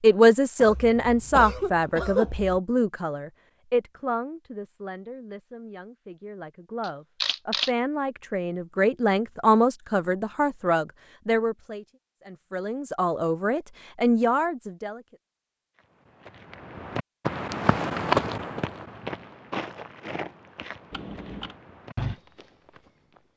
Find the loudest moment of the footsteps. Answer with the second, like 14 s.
18 s.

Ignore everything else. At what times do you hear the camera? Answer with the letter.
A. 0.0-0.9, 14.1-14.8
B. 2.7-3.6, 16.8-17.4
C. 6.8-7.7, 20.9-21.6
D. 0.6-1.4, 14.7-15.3
C.